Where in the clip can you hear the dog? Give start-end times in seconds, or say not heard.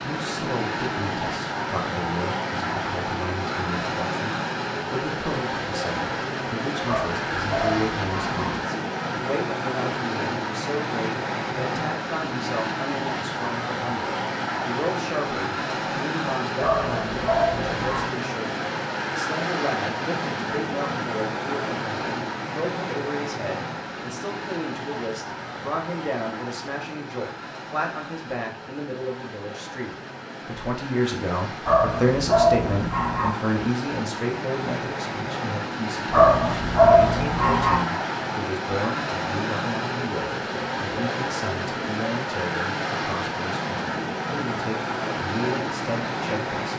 6.8-8.6, 16.6-18.1, 31.6-33.3, 36.1-37.8.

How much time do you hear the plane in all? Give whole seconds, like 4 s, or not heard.
47 s.